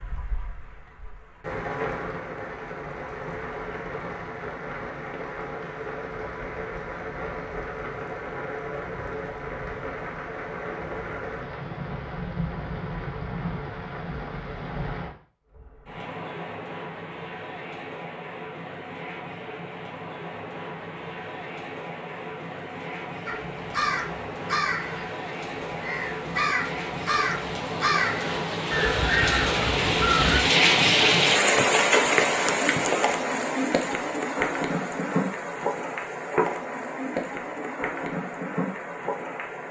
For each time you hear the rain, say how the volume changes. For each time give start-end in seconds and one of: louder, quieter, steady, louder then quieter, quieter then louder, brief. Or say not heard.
0.0-39.6 louder.